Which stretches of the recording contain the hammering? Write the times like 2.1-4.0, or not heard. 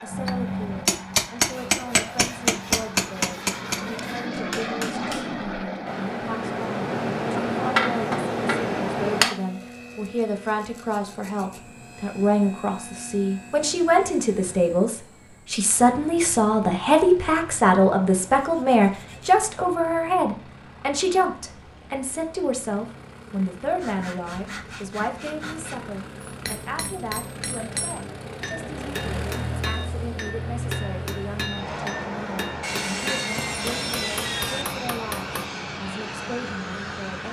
0.1-9.3, 26.2-35.5.